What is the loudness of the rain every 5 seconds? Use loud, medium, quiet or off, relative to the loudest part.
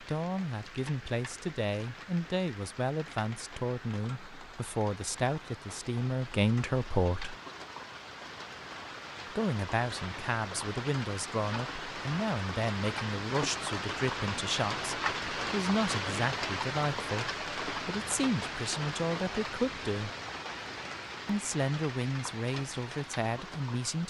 quiet, medium, loud, loud, medium.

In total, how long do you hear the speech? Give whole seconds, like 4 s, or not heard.
21 s.